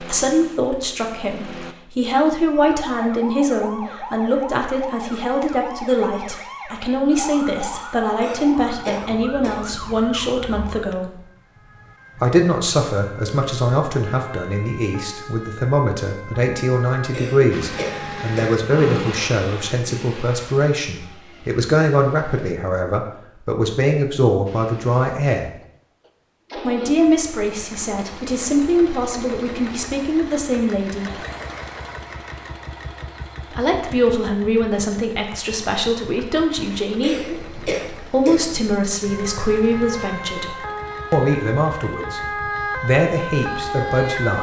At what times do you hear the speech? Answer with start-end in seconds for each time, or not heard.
0.0-11.2, 12.2-25.5, 26.6-31.2, 33.5-42.2, 42.8-44.3.